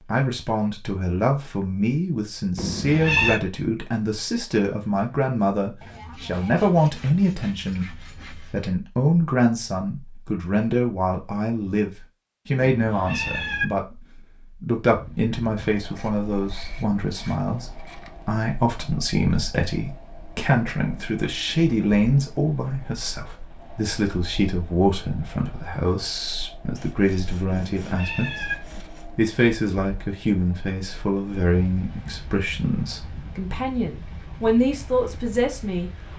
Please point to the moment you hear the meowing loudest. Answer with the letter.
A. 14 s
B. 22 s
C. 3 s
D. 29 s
C.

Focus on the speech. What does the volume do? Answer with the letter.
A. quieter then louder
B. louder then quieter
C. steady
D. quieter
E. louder
C.